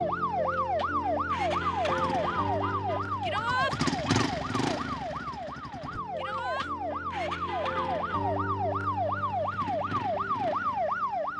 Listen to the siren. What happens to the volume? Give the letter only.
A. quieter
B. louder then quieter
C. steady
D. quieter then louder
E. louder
D.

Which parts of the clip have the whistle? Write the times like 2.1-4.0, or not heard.
not heard.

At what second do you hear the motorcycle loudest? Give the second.
4 s.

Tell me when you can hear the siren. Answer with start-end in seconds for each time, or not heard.
0.0-11.3.